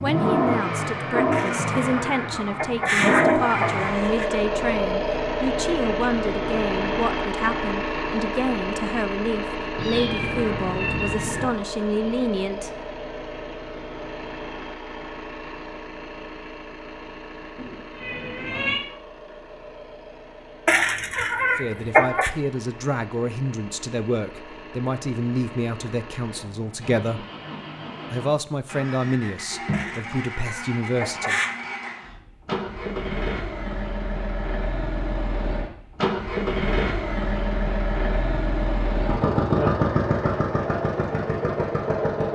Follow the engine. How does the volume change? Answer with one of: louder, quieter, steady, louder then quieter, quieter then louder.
quieter then louder.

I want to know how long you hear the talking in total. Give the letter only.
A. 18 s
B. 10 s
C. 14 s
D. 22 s
D.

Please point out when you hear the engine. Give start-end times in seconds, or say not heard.
0.0-42.2.